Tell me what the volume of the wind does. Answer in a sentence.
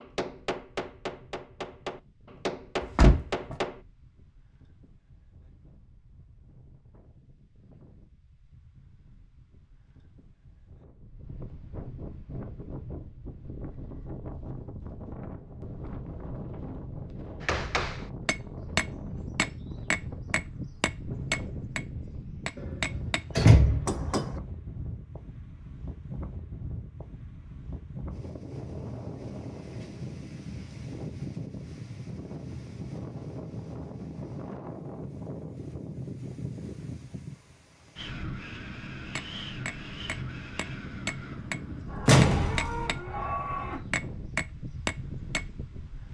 The loudness of the wind goes up.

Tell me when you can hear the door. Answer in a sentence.
The door can be heard from 2.8 to 3.5 s, from 23.4 to 24.2 s and from 42.0 to 42.9 s.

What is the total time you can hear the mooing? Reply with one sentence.
You can hear the mooing for 2 seconds altogether.